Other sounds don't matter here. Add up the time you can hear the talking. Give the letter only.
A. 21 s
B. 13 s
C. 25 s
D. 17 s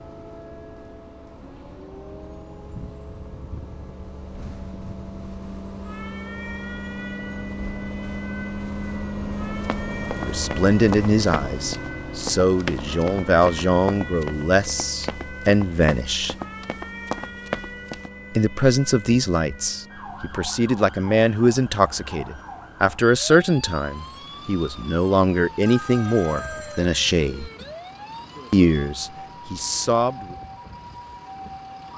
D.